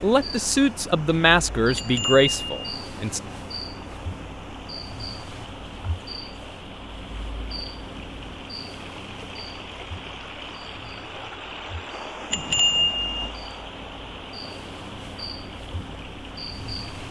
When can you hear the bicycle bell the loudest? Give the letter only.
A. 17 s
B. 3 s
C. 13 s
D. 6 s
C.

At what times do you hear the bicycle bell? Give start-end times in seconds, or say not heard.
1.8-2.5, 12.3-13.3.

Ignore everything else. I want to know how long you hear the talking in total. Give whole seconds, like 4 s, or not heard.
3 s.